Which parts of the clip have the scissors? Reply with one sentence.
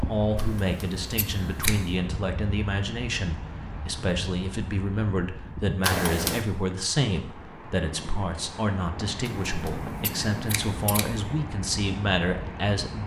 The scissors can be heard from 0.3 to 1.9 s, from 5.8 to 6.5 s and from 9.2 to 11.1 s.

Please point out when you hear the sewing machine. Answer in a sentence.
The sewing machine can't be heard in this clip.